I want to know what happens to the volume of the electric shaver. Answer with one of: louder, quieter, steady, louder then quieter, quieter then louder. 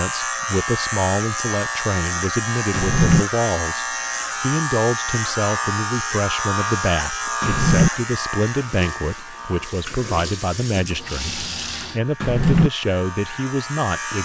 quieter.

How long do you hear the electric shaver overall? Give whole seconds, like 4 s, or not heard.
14 s.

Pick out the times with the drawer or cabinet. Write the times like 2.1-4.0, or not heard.
2.7-3.2, 7.4-7.9, 12.2-12.7.